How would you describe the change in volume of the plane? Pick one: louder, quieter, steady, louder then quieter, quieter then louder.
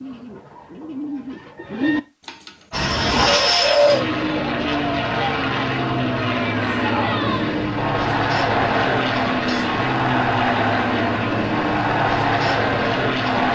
steady.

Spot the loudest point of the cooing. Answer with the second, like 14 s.
4 s.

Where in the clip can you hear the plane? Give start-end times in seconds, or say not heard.
2.7-13.5.